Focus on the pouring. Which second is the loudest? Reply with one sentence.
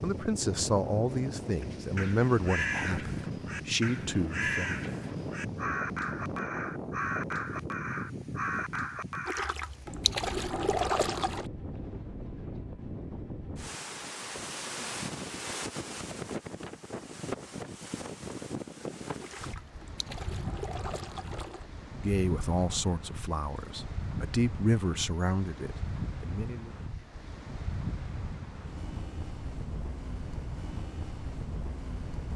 The loudest moment of the pouring is at 11 seconds.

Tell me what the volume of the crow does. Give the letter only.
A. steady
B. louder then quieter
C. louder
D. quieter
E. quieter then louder
A.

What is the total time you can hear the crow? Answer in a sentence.
You can hear the crow for 8 seconds altogether.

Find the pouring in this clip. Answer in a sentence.
You can hear the pouring from 9.2 to 11.4 s and from 19.2 to 21.7 s.